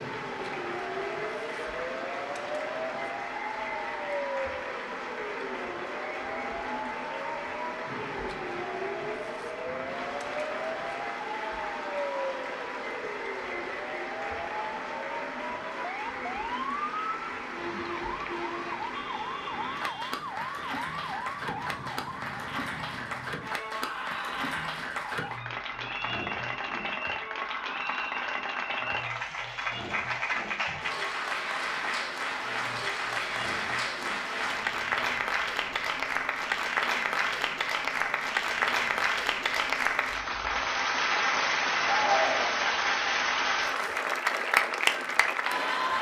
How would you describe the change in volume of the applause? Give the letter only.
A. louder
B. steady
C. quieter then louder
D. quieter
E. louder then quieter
A.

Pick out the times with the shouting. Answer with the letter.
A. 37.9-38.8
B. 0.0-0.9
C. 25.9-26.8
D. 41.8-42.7
D.